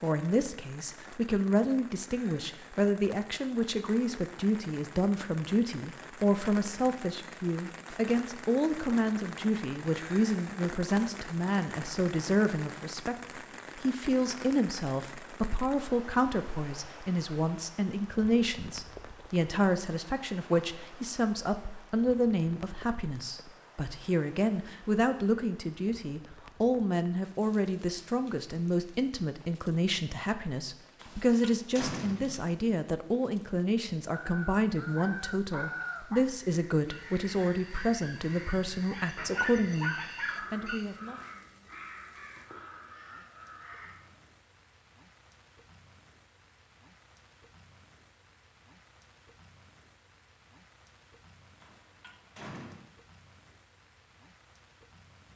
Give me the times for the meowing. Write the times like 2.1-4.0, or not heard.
not heard.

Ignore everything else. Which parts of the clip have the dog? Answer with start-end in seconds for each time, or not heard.
34.9-40.9.